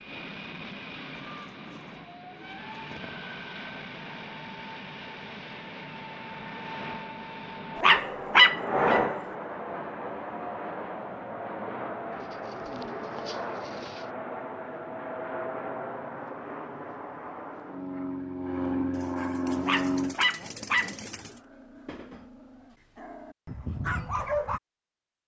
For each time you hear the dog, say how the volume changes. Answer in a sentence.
The dog can be heard briefly from 7.8 to 9.1 s; and from 19.6 to 24.6 s, getting quieter then louder.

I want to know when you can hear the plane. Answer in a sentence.
You can hear the plane from 0.0 to 20.1 s.